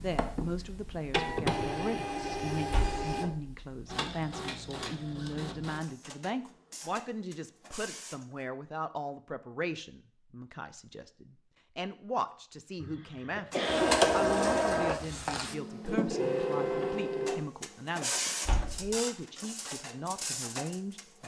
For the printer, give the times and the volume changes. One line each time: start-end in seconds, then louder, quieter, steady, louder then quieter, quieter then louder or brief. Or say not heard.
0.0-8.4 quieter
13.5-21.2 quieter.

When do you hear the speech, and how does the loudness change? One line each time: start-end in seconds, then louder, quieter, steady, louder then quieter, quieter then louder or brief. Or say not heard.
0.0-21.2 steady.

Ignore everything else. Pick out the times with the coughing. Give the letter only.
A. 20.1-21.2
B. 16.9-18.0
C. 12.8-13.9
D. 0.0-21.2
C.